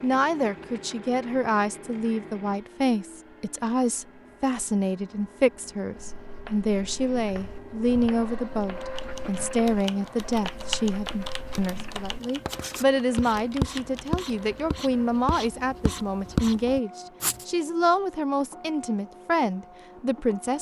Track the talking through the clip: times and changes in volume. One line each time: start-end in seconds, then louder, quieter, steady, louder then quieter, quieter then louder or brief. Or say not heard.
0.0-20.5 steady.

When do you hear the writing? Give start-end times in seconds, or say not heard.
6.0-17.4.